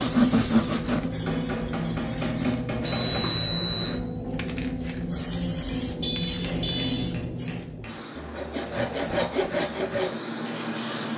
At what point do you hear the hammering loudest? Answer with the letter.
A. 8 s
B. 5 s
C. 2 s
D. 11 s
C.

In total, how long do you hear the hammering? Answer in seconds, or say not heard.
3 s.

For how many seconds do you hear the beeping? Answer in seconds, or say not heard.
2 s.